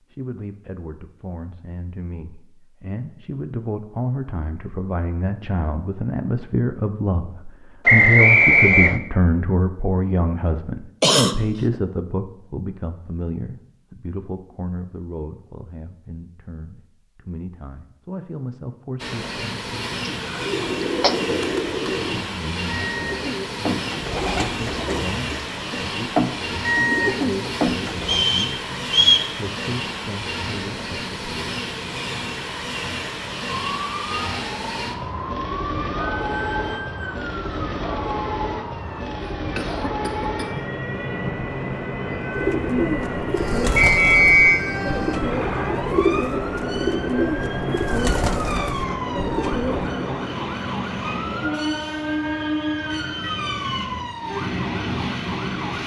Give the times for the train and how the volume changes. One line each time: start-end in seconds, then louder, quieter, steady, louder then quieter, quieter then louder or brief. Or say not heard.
18.9-55.8 steady.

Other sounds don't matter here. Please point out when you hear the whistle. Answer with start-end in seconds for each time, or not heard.
7.8-8.9, 28.1-29.3, 43.8-44.6.